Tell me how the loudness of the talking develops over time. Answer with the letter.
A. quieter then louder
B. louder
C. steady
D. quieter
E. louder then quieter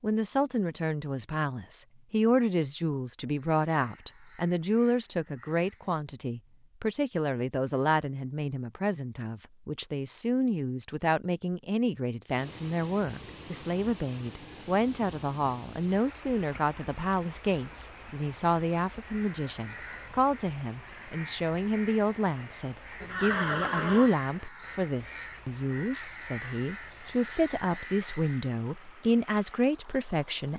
C.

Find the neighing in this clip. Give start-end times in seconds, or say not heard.
23.0-24.1.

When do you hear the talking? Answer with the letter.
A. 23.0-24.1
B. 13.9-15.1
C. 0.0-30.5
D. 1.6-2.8
C.